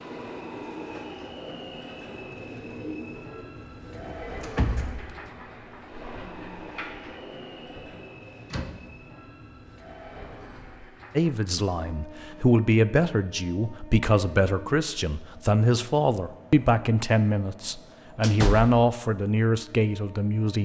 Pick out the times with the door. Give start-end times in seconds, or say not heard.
3.9-5.2, 7.9-8.8, 18.2-18.8.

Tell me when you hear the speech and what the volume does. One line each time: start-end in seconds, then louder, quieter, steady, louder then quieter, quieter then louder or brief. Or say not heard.
11.2-20.5 steady.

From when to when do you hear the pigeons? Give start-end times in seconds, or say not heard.
0.1-8.0.